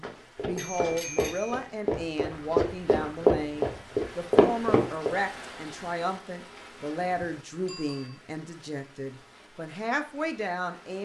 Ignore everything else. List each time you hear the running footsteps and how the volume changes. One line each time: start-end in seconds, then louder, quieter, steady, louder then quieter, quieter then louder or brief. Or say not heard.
0.0-5.2 louder.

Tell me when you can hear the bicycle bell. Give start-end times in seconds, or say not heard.
0.6-1.6, 7.7-8.2.